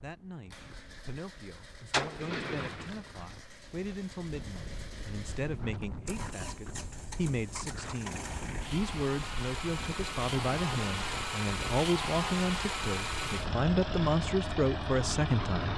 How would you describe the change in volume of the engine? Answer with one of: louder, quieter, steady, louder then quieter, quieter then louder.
louder.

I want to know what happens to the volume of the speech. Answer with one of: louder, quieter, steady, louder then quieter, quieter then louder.
louder.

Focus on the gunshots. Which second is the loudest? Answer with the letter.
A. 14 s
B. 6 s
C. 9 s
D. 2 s
D.